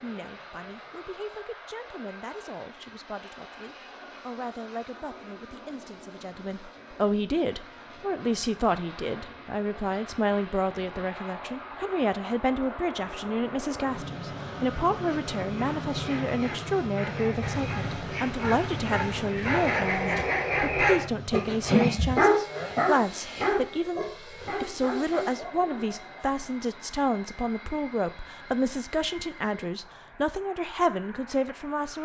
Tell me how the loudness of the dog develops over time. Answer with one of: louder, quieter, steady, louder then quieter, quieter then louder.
louder then quieter.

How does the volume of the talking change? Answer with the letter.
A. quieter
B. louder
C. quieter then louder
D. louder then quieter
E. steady
B.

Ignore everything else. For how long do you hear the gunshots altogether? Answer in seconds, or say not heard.
3 s.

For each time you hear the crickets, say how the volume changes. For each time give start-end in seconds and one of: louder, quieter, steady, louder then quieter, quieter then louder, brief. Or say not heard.
not heard.